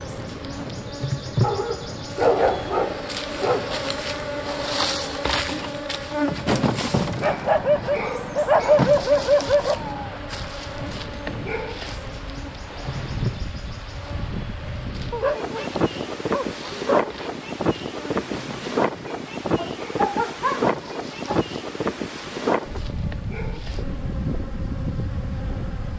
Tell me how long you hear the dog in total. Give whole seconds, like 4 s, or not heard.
9 s.